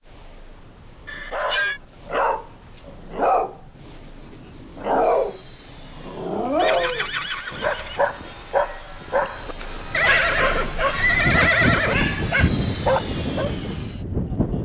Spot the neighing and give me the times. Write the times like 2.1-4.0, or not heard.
1.1-1.8, 6.5-8.1, 9.9-11.9.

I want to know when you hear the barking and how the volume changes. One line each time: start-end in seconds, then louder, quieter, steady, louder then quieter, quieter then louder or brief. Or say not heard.
1.3-13.5 steady.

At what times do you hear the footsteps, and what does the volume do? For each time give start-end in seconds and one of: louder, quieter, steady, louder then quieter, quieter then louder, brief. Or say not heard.
not heard.